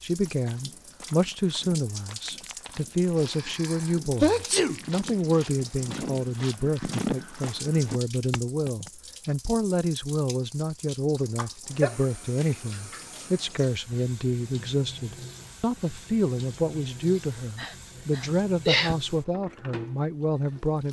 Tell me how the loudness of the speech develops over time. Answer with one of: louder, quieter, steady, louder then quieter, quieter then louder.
steady.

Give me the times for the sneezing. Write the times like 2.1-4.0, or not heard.
3.1-4.8, 11.3-11.9, 17.6-18.9.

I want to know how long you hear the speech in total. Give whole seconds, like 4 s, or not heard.
21 s.